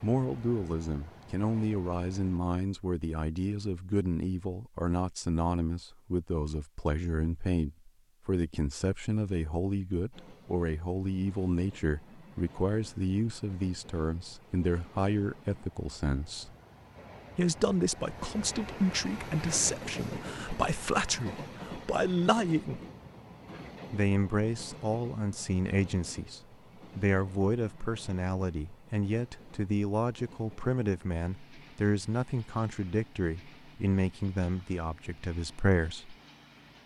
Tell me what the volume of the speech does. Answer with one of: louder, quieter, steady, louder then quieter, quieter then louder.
steady.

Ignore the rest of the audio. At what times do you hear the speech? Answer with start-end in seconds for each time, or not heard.
0.0-16.6, 17.4-22.8, 23.9-36.1.